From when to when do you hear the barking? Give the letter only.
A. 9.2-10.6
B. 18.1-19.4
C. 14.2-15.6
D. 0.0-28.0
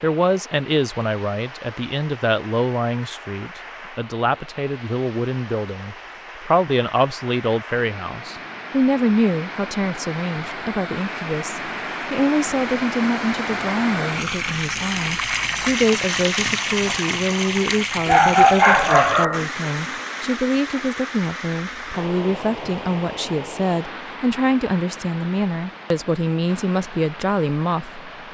B.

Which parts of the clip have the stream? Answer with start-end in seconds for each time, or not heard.
0.0-28.3.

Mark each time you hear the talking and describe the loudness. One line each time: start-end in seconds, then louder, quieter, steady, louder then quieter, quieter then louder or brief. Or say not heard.
0.0-28.0 steady.